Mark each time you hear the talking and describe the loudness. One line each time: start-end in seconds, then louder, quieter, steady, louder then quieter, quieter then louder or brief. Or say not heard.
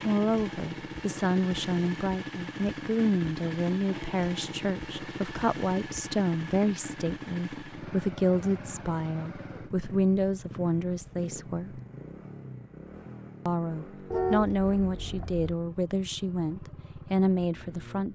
0.0-11.8 steady
13.4-18.0 quieter then louder.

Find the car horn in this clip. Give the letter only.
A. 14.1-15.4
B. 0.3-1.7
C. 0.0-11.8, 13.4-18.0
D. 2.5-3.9
A.